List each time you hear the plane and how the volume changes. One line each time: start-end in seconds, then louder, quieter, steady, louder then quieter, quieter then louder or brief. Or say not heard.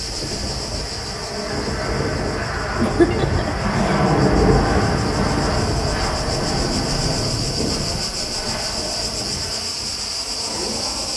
0.0-11.1 louder then quieter.